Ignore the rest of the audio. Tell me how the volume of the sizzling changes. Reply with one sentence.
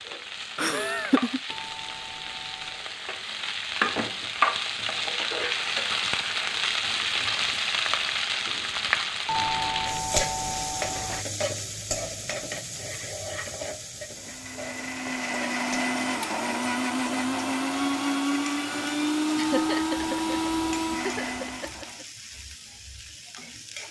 The loudness of the sizzling goes down.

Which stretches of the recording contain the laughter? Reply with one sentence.
The laughter can be heard from 0.6 to 1.4 s and from 19.4 to 22.1 s.